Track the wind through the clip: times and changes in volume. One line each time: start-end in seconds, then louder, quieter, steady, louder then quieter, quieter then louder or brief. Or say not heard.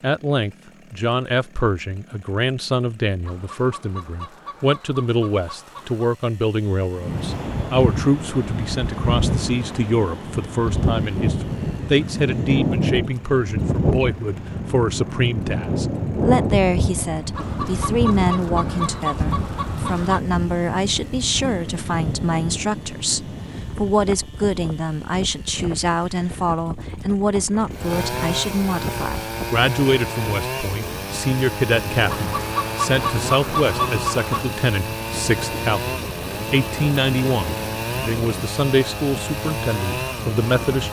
7.0-40.8 quieter.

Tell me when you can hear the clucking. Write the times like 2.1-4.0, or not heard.
3.2-6.2, 17.4-20.2, 32.0-34.5.